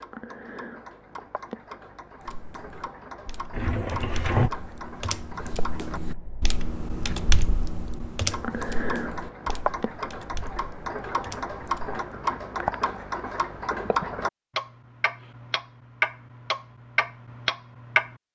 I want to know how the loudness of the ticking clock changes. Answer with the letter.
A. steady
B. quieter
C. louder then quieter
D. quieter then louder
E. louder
E.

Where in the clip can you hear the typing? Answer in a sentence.
The typing can be heard from 2.2 to 12.0 s.